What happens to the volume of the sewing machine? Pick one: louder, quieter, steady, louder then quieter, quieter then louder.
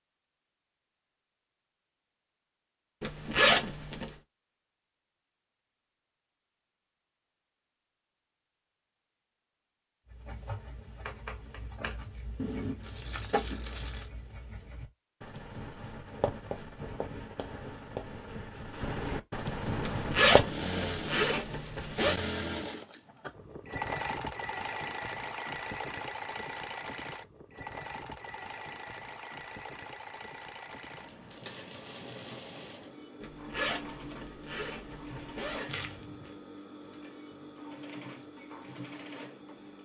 quieter.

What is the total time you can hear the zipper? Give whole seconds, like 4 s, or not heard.
6 s.